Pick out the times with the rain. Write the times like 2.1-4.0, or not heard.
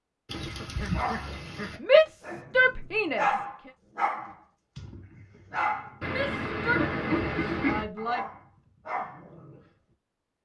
not heard.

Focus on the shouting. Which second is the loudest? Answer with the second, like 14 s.
2 s.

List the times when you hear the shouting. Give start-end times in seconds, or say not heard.
1.8-3.2, 6.0-8.2.